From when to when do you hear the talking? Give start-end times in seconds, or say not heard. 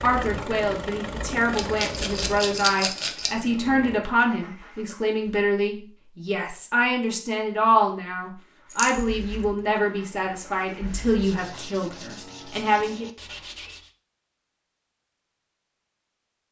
0.0-13.1.